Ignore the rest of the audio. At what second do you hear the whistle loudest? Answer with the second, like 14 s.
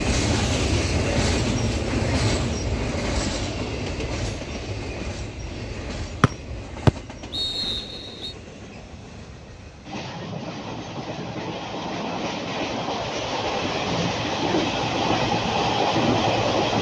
7 s.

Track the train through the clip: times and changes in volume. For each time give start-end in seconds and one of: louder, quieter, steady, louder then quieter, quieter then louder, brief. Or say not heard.
0.0-16.7 quieter then louder.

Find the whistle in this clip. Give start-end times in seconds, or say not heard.
6.2-8.3.